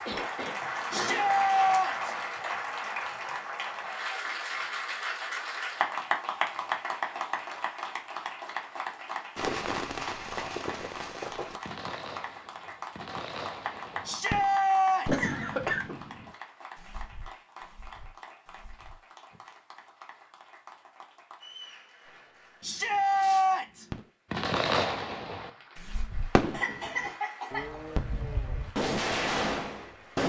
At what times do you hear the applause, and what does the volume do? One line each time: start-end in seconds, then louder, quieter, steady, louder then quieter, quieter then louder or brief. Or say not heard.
0.0-30.2 quieter.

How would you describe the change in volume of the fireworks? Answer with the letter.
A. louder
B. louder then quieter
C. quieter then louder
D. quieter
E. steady
C.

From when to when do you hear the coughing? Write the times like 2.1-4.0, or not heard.
0.1-1.9, 15.1-16.0, 26.5-27.8.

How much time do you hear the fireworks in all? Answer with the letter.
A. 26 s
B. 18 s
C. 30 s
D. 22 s
B.